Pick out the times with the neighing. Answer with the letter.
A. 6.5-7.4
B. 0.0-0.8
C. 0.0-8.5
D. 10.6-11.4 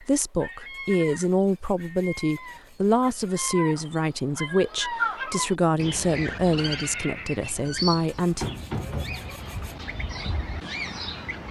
A.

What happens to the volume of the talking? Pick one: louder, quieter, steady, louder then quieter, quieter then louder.
steady.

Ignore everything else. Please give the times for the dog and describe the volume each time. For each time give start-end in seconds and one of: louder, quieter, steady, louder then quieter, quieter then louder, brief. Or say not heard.
not heard.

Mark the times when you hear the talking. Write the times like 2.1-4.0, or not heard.
0.0-8.5.